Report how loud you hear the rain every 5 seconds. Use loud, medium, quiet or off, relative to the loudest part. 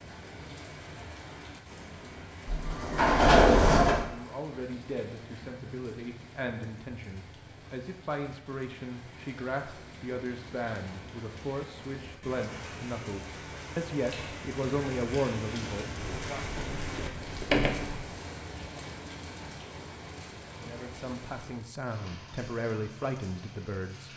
medium, medium, loud, loud, medium.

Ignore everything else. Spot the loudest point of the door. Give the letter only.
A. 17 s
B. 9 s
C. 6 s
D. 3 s
D.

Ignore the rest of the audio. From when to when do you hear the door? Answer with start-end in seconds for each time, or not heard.
2.5-4.0, 16.0-17.9.